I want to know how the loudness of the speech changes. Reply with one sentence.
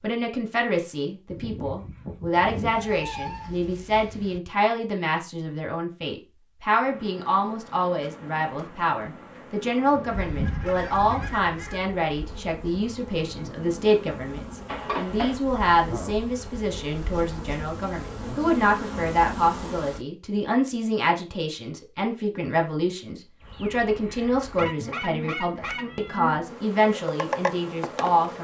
The volume of the speech stays about the same.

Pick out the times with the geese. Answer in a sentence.
The geese can be heard from 1.3 to 2.8 s, from 10.1 to 11.8 s and from 24.6 to 25.9 s.